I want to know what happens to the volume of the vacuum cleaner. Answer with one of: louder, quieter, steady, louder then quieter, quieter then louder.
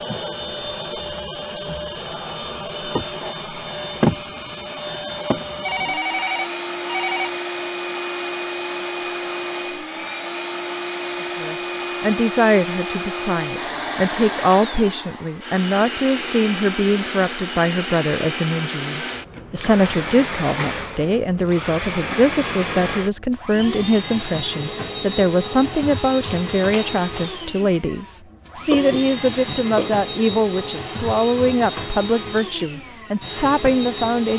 steady.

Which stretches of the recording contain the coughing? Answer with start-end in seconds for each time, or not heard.
28.7-30.0.